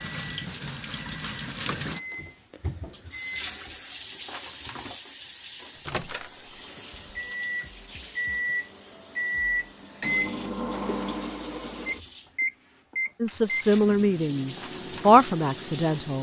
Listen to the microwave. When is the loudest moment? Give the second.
10 s.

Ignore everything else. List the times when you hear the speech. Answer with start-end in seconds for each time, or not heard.
13.2-16.1.